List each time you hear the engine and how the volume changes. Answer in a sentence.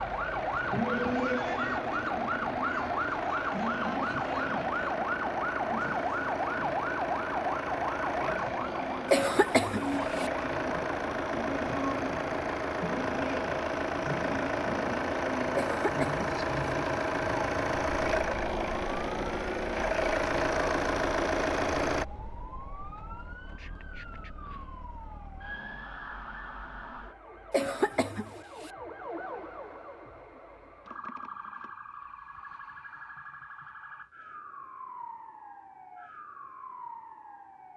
You can hear the engine from 0.0 to 22.1 s, getting louder.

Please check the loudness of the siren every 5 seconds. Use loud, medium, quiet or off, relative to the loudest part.
loud, loud, medium, medium, quiet, quiet, quiet, quiet.